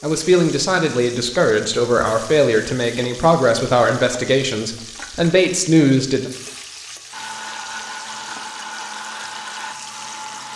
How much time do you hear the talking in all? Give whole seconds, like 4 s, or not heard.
6 s.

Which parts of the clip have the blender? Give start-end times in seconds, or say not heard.
7.1-10.5.